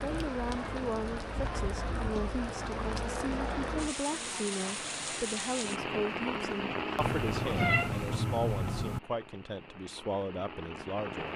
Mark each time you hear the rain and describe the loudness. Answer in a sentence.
The rain can be heard from 0.0 to 11.3 s, getting quieter.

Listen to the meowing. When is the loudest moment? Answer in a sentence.
The volume of the meowing peaks at 8 seconds.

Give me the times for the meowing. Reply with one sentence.
The meowing can be heard from 7.0 to 9.0 s.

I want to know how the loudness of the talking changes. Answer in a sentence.
The volume of the talking stays about the same.